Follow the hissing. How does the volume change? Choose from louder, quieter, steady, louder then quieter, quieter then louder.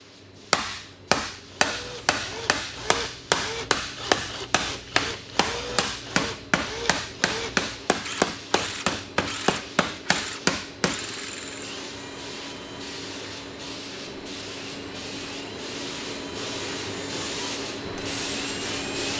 louder.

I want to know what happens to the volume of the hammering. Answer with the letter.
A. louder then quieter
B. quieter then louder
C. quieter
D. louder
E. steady
E.